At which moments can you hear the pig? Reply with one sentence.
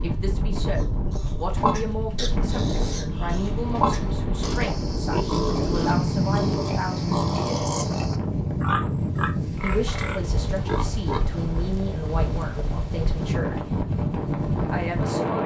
The pig can be heard from 0.8 to 11.4 s.